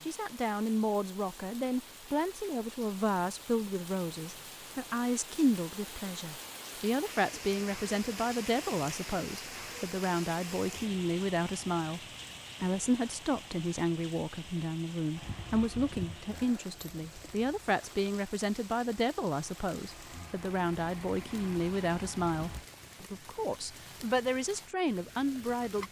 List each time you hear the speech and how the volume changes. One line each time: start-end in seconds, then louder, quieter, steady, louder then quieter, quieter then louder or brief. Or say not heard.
0.0-12.0 steady
12.6-25.8 steady.